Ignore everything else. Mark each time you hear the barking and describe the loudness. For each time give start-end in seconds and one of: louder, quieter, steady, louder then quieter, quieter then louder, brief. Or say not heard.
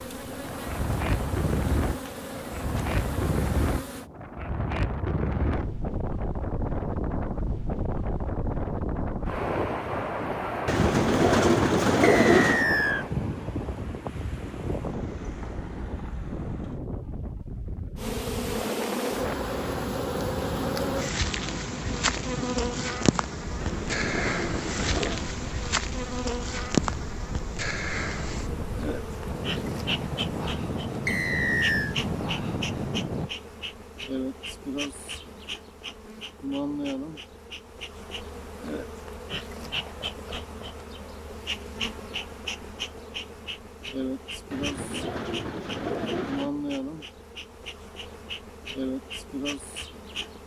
not heard.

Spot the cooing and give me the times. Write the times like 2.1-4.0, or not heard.
10.7-12.7, 23.6-25.2, 44.5-46.5.